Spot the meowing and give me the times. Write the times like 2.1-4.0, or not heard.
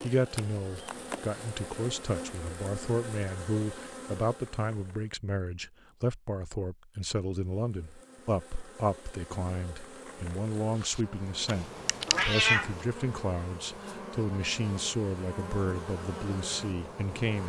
11.4-12.8.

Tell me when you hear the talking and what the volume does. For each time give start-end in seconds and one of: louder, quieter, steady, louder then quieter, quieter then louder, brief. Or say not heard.
0.0-17.4 steady.